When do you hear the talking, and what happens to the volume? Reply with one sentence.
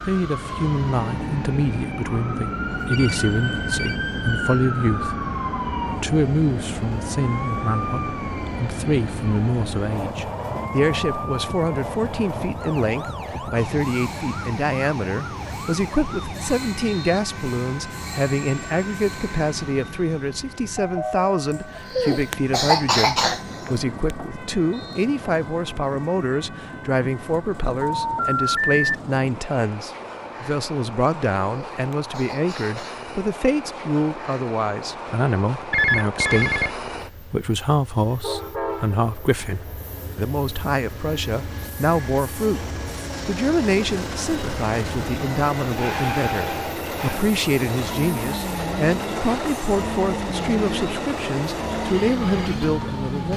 The talking can be heard from 0.0 to 53.3 s, at a steady volume.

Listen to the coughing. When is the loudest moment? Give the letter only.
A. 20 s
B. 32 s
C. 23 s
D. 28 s
C.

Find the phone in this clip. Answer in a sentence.
You can hear the phone from 2.9 to 4.0 s, from 28.1 to 28.8 s and from 35.7 to 36.7 s.